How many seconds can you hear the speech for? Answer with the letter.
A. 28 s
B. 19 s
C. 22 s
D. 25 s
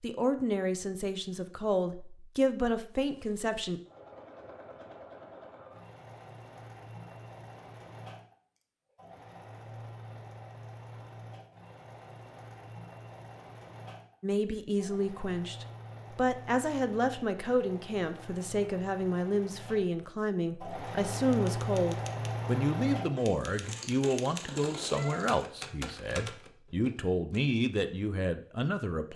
B.